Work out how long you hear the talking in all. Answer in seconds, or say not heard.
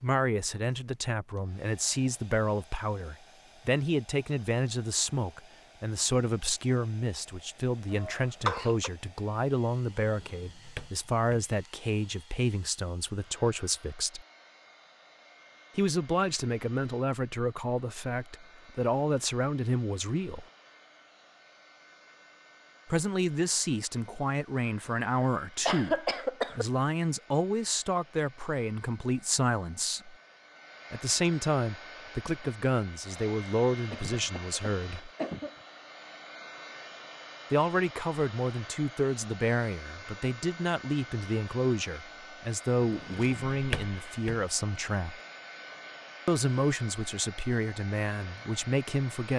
41 s.